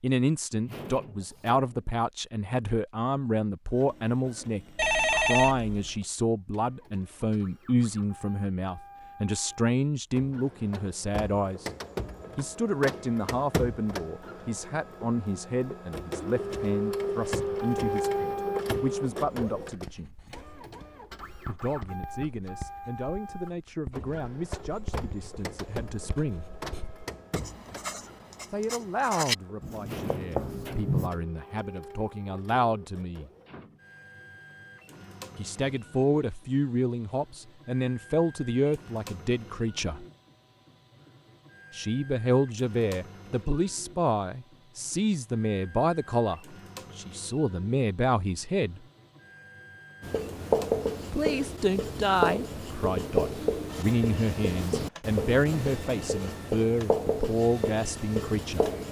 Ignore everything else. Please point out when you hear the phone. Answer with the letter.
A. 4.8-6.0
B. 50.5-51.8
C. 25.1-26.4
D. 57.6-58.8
A.